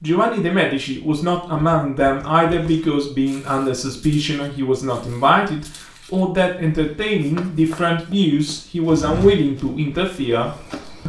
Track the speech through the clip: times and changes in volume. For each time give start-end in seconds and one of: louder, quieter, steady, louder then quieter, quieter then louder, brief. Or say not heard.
0.0-11.0 steady.